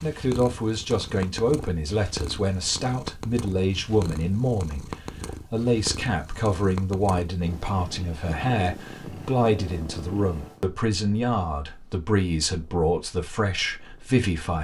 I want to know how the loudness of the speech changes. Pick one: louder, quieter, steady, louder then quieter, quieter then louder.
steady.